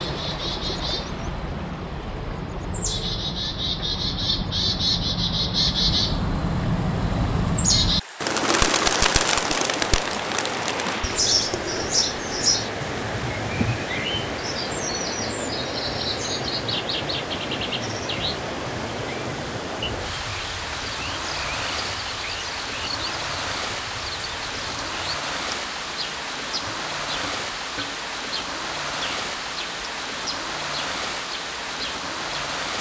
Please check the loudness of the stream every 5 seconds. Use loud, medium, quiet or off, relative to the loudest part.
medium, quiet, loud, loud, loud, loud, loud.